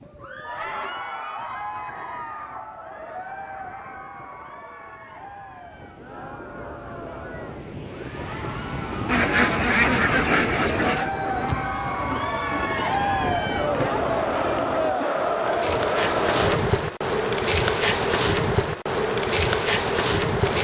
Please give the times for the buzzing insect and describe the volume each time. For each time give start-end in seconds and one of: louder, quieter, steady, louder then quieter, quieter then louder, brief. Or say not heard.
11.3-20.5 louder.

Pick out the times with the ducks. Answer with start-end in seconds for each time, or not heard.
9.1-11.1.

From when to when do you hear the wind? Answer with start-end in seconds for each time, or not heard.
0.0-14.9.